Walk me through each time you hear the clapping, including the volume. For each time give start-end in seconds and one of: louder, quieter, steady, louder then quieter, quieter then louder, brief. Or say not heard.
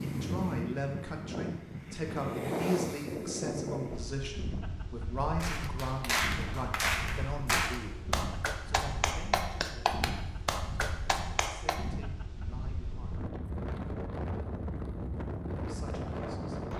5.4-11.8 steady.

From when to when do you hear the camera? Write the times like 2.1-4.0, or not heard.
not heard.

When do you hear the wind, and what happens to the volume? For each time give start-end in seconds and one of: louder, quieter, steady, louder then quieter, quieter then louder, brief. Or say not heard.
0.0-16.7 quieter then louder.